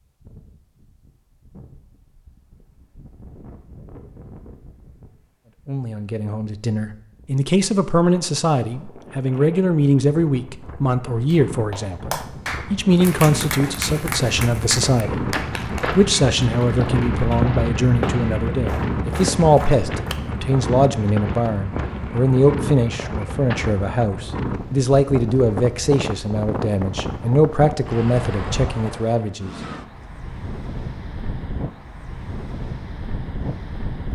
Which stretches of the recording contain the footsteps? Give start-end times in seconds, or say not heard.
12.8-23.8.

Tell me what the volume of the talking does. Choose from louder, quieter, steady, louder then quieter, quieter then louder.
steady.